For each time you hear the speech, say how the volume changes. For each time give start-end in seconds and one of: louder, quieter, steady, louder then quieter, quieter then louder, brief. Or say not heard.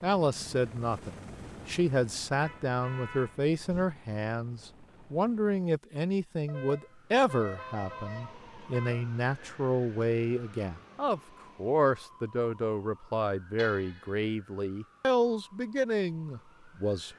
0.0-17.1 steady.